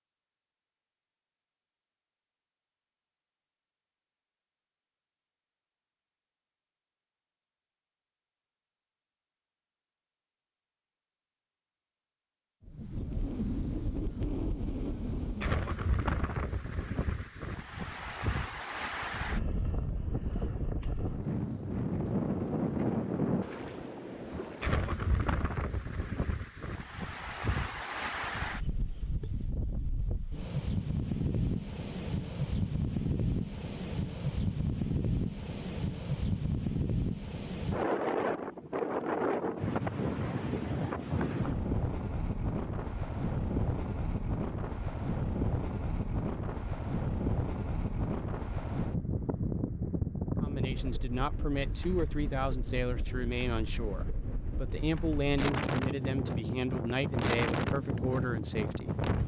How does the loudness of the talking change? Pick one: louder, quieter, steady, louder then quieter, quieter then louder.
steady.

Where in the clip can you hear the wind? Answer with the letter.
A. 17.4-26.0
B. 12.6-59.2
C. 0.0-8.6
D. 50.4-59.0
B.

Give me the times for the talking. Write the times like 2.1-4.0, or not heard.
50.4-59.0.